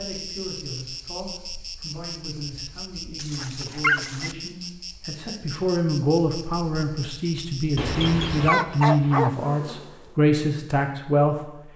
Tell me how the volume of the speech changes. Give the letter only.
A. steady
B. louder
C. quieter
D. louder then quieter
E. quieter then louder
B.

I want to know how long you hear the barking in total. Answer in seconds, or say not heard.
3 s.